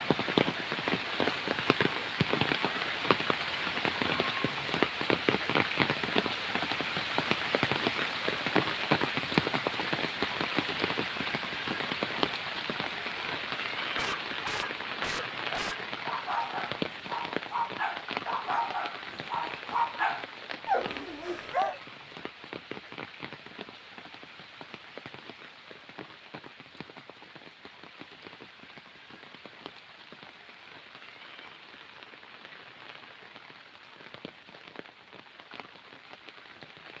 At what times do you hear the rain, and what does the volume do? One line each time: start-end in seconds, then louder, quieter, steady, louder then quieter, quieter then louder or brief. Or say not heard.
0.0-36.9 quieter.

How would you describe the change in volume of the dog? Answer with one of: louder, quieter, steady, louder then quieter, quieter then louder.
louder.